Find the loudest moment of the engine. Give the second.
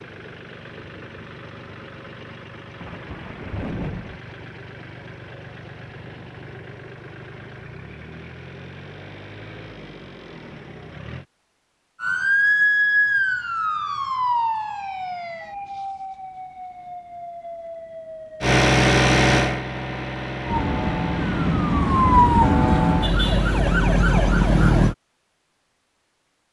19 s.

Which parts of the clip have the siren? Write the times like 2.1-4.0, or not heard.
12.0-18.6, 20.4-24.9.